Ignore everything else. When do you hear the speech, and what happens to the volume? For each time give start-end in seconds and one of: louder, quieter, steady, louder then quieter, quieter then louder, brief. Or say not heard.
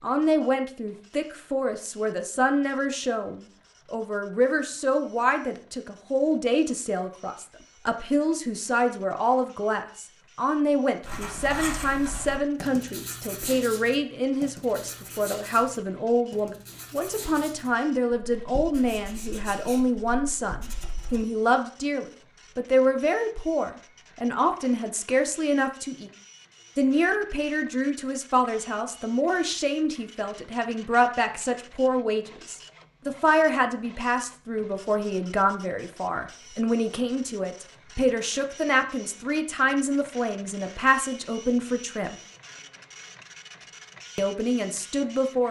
0.0-26.1 steady
26.8-42.1 steady
44.1-45.4 brief.